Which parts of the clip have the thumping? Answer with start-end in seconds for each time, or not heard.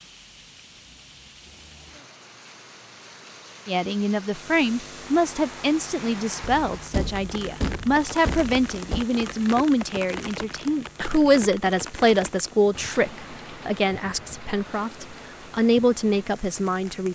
6.4-9.1.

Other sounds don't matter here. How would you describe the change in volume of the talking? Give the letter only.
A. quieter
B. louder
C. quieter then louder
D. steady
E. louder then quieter
D.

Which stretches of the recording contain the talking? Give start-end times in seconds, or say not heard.
3.6-17.1.